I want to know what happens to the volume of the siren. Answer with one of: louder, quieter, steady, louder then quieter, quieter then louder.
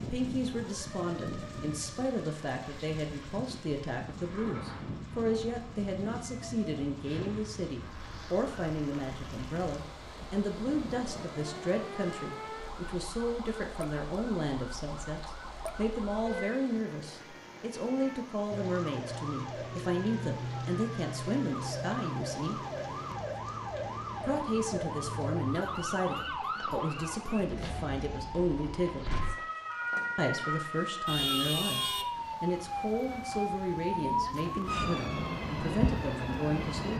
louder.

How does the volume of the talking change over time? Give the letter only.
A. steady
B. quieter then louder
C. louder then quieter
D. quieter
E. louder
A.